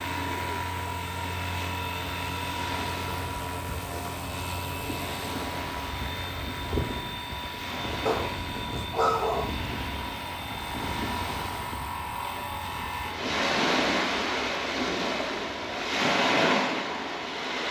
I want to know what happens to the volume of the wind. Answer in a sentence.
The loudness of the wind goes up.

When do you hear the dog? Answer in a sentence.
You can hear the dog from 8.1 to 9.6 s.